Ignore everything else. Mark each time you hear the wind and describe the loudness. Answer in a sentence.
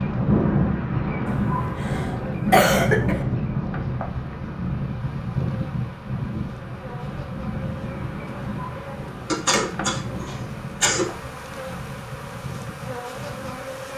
You can hear the wind from 0.0 to 13.9 s, getting quieter.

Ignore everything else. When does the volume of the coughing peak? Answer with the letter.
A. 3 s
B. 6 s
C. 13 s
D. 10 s
A.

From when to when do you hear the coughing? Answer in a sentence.
The coughing can be heard from 1.2 to 3.2 s and from 9.2 to 11.2 s.